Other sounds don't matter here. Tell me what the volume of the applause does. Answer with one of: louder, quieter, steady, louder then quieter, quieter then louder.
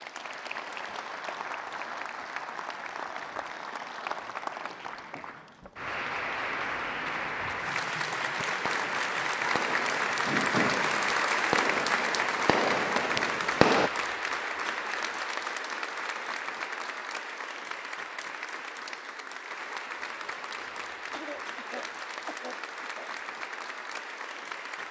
louder then quieter.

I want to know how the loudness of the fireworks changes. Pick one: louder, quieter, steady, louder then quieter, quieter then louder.
louder.